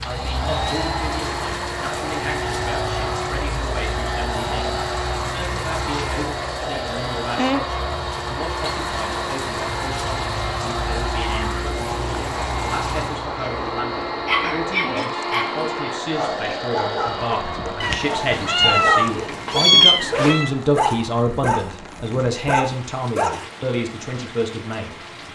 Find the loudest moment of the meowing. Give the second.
20 s.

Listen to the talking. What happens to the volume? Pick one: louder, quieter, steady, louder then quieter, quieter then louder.
louder.